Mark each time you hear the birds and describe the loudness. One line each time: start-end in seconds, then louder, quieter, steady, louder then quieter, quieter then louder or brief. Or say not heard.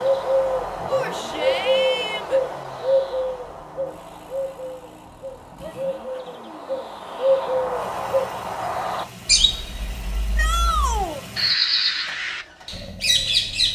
0.0-13.7 quieter then louder.